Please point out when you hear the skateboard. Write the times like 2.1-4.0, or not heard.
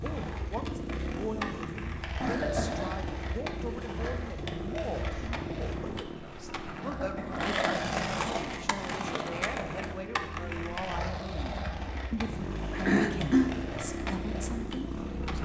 0.0-15.4.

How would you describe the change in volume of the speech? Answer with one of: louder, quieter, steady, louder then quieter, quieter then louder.
steady.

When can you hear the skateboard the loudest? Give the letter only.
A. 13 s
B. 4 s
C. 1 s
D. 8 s
D.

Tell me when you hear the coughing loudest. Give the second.
13 s.